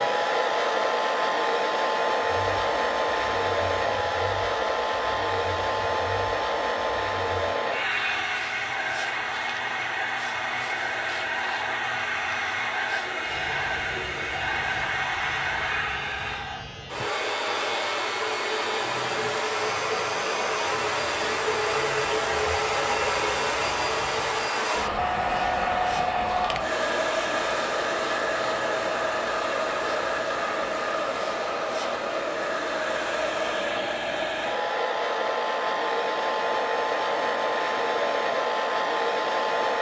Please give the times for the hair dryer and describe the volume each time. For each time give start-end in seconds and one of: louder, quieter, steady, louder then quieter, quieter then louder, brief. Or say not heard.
0.0-39.7 steady.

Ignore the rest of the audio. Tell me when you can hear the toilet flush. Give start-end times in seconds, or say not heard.
not heard.